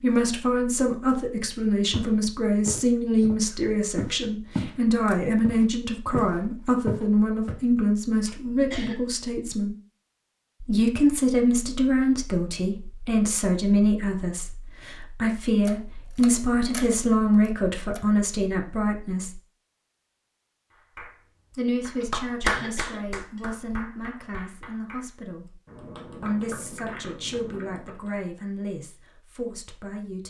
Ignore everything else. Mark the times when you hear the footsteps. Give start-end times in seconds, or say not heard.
1.9-4.8, 5.4-7.6.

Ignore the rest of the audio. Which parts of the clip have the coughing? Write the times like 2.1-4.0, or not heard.
8.2-8.9, 22.0-23.8.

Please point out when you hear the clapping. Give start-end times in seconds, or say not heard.
20.7-28.1.